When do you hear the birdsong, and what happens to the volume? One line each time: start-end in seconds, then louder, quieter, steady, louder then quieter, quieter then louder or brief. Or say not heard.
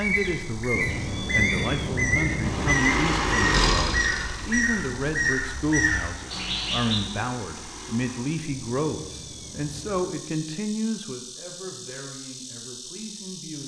0.0-7.0 steady.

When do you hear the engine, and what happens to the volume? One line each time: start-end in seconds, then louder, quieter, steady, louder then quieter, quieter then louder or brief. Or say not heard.
2.4-8.5 quieter.